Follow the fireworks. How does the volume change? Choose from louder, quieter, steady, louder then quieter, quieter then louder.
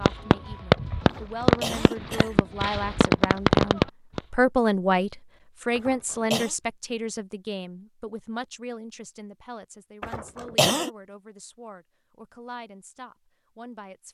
quieter then louder.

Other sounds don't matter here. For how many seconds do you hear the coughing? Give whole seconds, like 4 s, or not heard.
3 s.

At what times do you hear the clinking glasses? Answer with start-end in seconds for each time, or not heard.
not heard.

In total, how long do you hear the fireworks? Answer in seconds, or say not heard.
4 s.